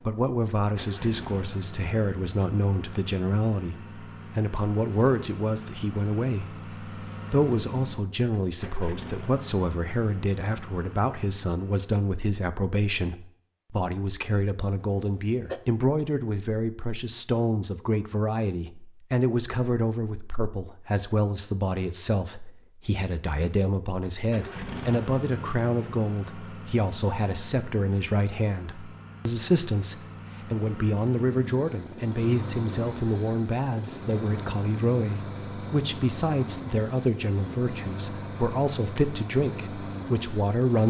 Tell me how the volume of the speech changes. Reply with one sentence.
The loudness of the speech stays about the same.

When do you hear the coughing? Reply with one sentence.
You can hear the coughing from 14.8 to 15.6 s.